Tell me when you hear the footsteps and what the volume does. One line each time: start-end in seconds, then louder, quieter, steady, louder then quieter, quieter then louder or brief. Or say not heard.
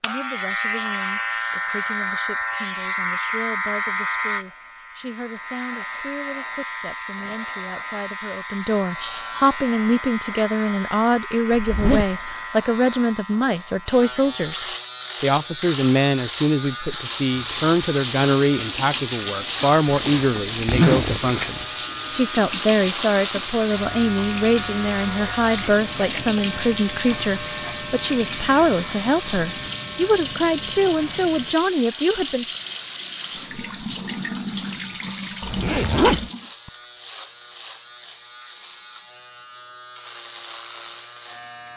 not heard.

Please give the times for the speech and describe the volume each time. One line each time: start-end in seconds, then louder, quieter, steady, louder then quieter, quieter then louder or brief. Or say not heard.
0.0-32.5 louder.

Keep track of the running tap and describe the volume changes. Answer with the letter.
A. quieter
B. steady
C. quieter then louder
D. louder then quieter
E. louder
B.